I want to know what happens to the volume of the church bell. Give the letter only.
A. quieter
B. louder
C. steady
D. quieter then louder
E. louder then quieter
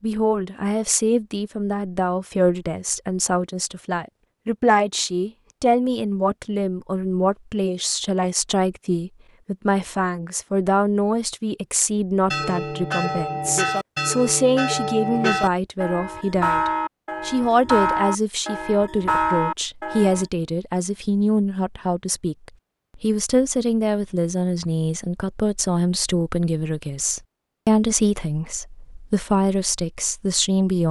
C.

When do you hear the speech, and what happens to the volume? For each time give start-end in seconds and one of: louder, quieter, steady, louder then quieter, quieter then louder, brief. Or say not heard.
0.0-30.8 steady.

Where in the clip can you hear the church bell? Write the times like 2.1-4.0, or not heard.
12.3-20.2.